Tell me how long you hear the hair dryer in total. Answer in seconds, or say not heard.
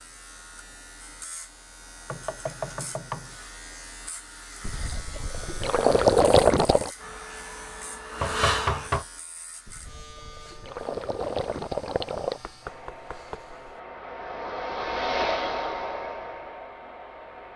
7 s.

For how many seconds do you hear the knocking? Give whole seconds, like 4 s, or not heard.
4 s.